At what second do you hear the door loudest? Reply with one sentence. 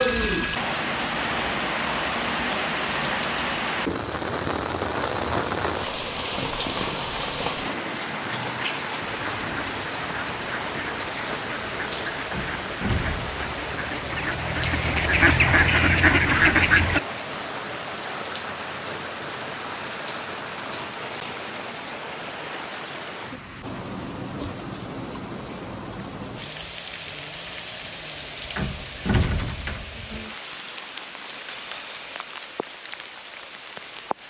The loudest moment of the door is at 29 seconds.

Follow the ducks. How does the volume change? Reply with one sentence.
The volume of the ducks goes up.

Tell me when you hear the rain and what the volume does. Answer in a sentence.
You can hear the rain from 0.0 to 34.2 s, getting quieter.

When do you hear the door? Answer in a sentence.
You can hear the door from 12.3 to 13.4 s and from 28.6 to 29.9 s.